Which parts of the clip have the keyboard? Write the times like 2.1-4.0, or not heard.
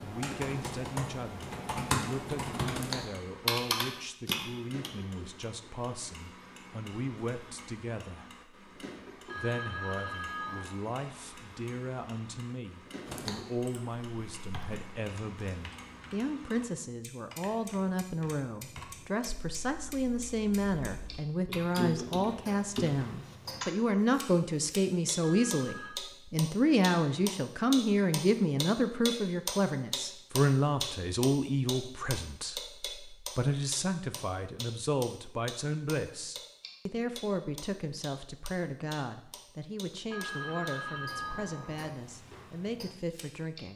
0.0-4.9, 13.1-23.7.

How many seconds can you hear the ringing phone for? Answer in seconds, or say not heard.
4 s.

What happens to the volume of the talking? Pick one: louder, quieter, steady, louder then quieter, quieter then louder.
louder then quieter.